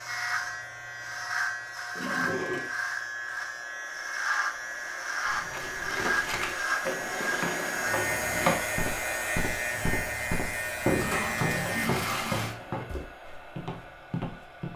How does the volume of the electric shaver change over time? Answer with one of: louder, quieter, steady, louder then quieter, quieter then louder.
steady.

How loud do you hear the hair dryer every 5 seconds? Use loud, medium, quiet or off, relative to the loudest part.
quiet, loud, medium.